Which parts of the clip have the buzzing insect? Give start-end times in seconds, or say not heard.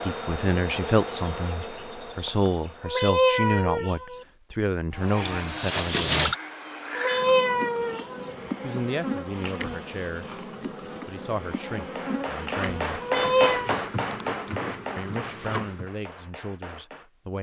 0.0-3.5, 4.9-15.9.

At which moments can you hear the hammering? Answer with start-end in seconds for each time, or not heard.
11.8-17.1.